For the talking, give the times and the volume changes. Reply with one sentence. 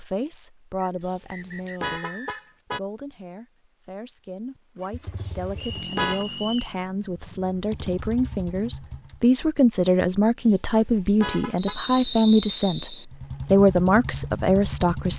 The talking can be heard from 0.0 to 15.1 s, getting louder.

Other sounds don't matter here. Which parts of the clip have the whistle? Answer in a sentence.
You can hear the whistle from 0.8 to 2.6 s, from 5.5 to 6.8 s and from 11.6 to 13.1 s.